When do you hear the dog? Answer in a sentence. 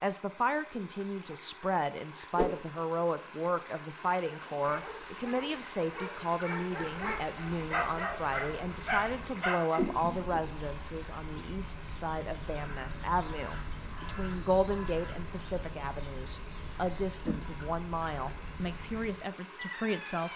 The dog can be heard from 4.5 to 9.8 s.